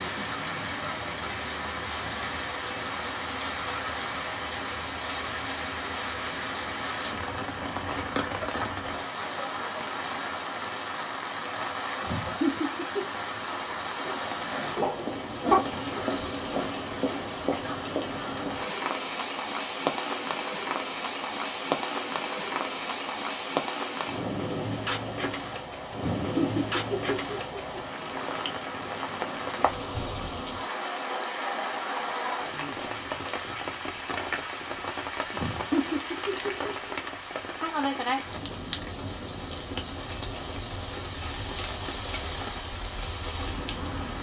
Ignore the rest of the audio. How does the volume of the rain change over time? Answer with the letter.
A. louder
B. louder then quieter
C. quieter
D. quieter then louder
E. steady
E.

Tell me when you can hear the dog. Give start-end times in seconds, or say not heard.
14.0-15.7.